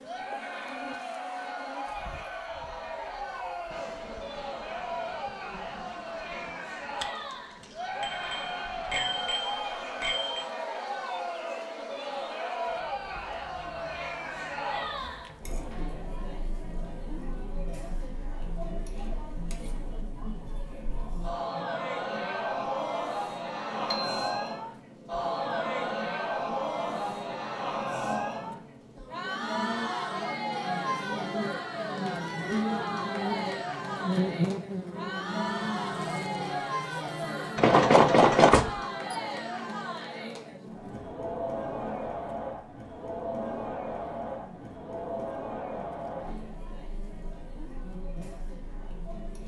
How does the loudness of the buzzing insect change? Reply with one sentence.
The loudness of the buzzing insect goes up, then down.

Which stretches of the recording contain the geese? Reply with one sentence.
You can't hear the geese here.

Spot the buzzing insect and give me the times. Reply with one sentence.
You can hear the buzzing insect from 0.0 to 49.4 s.